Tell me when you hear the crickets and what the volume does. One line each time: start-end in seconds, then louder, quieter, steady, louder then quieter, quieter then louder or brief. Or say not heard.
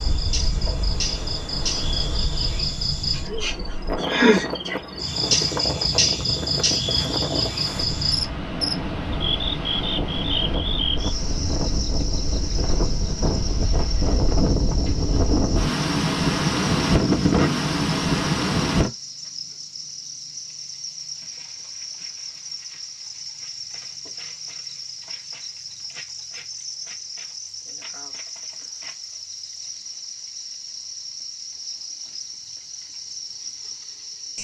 0.0-34.3 quieter.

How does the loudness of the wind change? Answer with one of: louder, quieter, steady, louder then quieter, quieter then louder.
louder.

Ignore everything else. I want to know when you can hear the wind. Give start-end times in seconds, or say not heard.
0.0-18.9.